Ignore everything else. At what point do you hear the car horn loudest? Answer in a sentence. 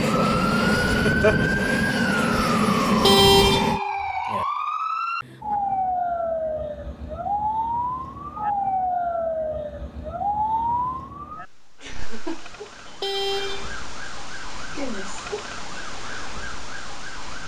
The loudest moment of the car horn is at 3 seconds.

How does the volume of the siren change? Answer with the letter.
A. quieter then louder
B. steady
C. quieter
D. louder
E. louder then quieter
C.